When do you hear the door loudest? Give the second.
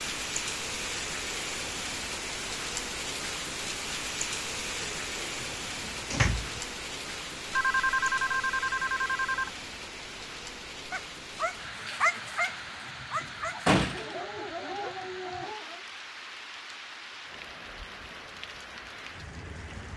14 s.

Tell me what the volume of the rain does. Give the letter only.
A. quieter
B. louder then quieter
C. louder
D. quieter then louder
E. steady
A.